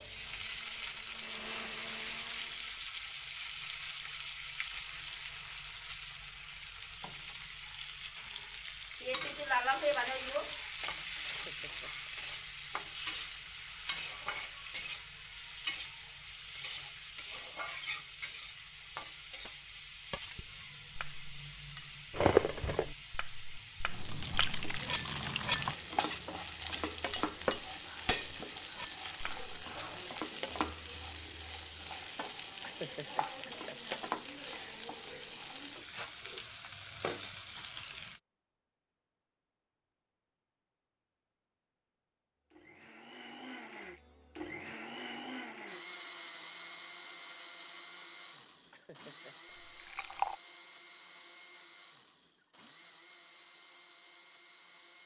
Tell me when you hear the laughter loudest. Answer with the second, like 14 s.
33 s.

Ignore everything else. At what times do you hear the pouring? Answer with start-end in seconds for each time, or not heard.
24.1-25.8, 49.5-50.4.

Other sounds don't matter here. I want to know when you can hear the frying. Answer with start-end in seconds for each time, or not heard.
0.0-38.2.